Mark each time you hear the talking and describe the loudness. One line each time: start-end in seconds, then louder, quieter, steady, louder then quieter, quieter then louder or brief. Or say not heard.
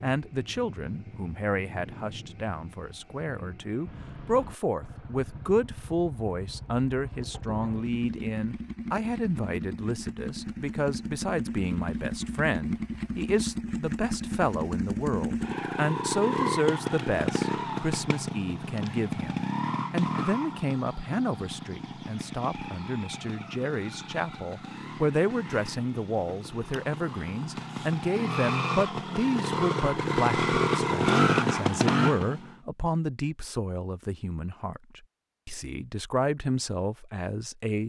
0.0-37.8 steady.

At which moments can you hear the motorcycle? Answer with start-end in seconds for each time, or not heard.
0.1-32.5.